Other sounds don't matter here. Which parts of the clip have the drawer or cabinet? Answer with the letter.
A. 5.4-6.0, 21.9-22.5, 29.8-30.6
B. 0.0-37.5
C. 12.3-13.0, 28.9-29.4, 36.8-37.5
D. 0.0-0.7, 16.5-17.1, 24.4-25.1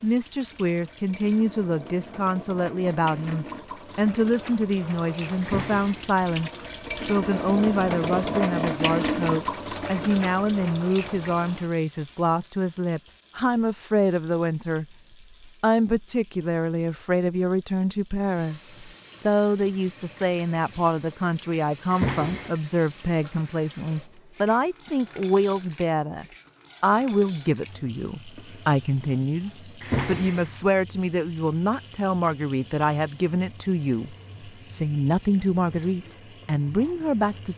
A.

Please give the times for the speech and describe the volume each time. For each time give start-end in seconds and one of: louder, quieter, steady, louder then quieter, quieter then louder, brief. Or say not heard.
0.0-37.5 steady.